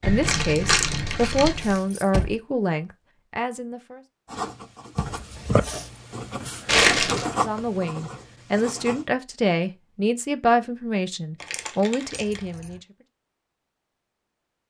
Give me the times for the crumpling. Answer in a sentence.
You can hear the crumpling from 0.0 to 1.8 s, from 6.7 to 7.2 s and from 11.4 to 12.4 s.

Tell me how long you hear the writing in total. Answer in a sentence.
You can hear the writing for 5 seconds altogether.